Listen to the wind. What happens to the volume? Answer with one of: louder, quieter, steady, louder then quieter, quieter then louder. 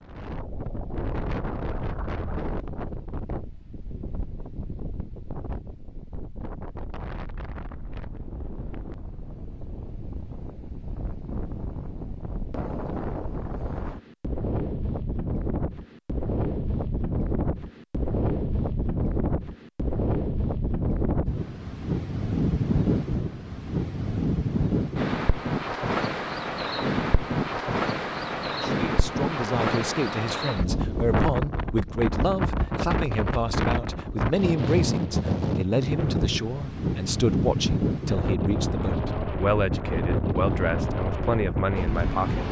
louder.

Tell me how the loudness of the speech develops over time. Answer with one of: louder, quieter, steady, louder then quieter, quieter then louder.
steady.